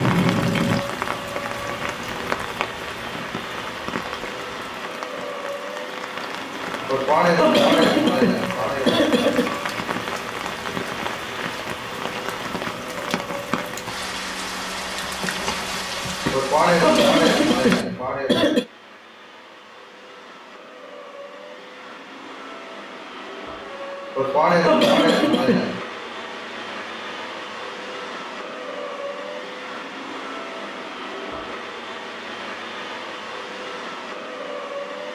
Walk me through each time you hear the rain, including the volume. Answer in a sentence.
The rain can be heard from 0.0 to 17.9 s, getting quieter then louder.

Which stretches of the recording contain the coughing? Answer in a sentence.
The coughing can be heard from 6.8 to 9.6 s, from 16.3 to 18.6 s and from 24.1 to 25.8 s.